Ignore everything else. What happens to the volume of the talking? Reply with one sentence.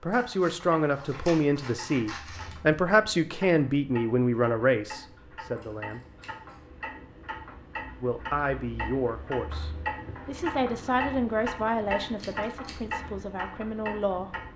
The volume of the talking goes down.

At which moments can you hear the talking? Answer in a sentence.
You can hear the talking from 0.0 to 6.0 s and from 8.0 to 14.3 s.